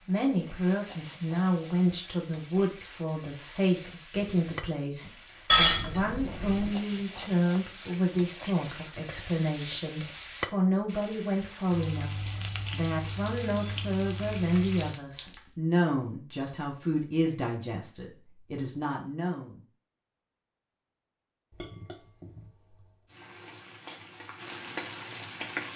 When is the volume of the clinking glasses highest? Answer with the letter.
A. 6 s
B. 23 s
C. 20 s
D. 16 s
A.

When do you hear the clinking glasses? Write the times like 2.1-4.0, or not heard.
5.5-6.7, 14.9-15.6, 21.5-22.8.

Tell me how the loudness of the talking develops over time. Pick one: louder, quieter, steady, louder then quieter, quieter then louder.
steady.